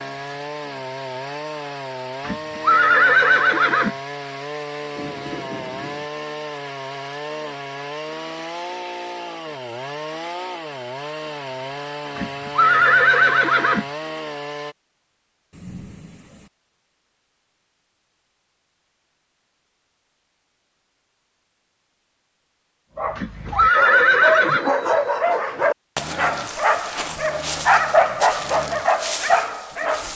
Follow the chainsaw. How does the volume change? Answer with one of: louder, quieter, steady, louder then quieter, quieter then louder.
steady.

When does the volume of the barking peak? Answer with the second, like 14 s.
28 s.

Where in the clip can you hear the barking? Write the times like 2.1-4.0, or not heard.
22.9-30.1.